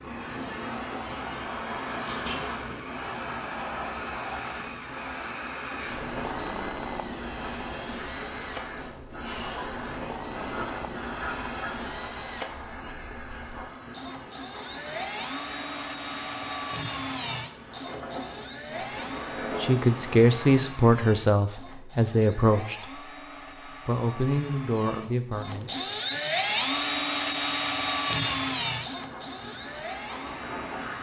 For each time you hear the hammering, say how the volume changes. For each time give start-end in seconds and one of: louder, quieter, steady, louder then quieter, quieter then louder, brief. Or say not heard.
not heard.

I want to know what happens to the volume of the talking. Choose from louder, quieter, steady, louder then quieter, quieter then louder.
quieter.